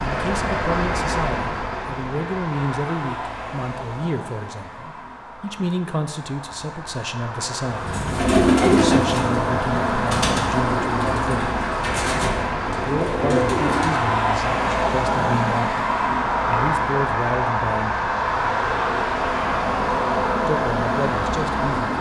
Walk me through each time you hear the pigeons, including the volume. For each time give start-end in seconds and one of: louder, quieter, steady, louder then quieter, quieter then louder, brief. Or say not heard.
7.7-14.1 quieter then louder.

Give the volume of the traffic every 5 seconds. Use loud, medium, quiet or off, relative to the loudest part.
medium, medium, loud, loud, loud.